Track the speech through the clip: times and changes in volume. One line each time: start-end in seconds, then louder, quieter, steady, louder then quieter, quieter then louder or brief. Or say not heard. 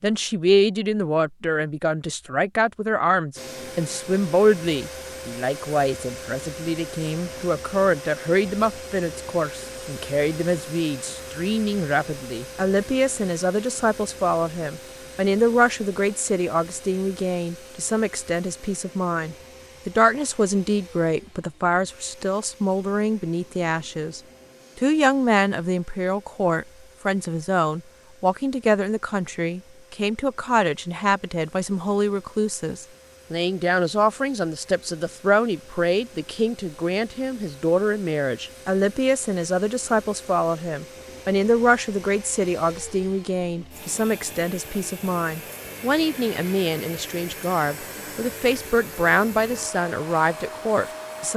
0.0-51.3 steady.